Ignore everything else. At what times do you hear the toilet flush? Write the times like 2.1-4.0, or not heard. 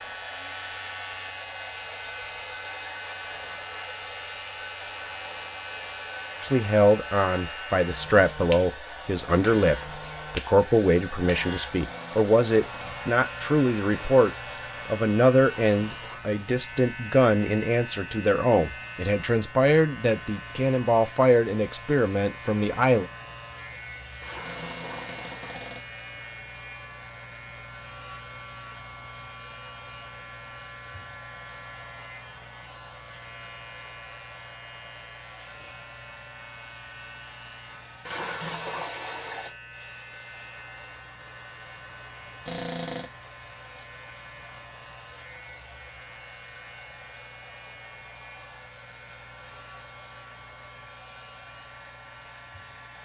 15.4-16.2, 24.2-25.8, 38.0-39.5.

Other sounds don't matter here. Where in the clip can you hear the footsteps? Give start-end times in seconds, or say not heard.
not heard.